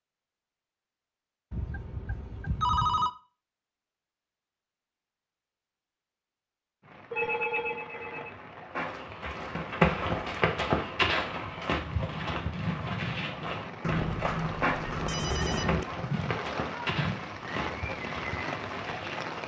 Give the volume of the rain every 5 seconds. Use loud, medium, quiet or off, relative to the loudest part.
off, medium, loud, loud.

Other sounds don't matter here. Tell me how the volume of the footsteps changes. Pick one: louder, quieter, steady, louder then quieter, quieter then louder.
quieter.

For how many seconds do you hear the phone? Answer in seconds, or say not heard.
5 s.